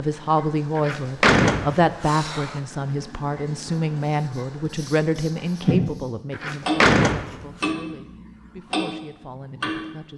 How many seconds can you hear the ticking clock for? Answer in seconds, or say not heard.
10 s.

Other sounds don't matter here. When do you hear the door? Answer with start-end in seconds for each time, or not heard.
0.8-2.6, 6.3-7.5.